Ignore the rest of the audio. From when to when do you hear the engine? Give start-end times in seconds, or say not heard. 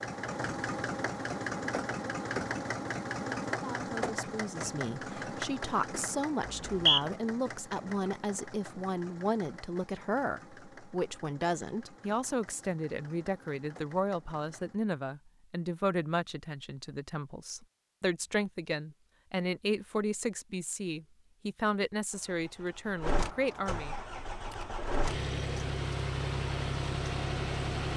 0.0-14.8, 22.1-27.9.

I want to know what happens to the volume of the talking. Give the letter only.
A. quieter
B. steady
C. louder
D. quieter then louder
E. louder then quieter
B.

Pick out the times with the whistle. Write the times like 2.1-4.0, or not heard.
6.5-7.0.